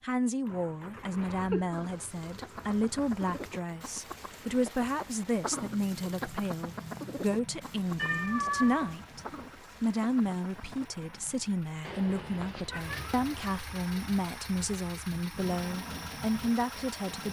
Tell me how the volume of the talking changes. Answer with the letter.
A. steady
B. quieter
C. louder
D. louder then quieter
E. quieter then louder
A.